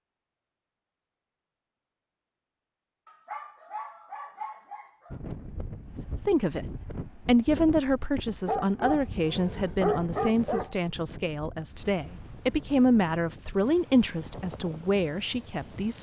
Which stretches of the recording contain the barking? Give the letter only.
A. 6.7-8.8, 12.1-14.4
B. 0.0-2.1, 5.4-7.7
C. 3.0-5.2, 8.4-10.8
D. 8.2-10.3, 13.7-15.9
C.